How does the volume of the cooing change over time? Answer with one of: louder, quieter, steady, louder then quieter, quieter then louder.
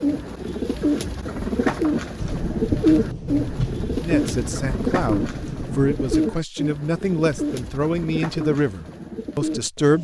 quieter.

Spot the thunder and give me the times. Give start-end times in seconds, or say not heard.
2.1-6.2.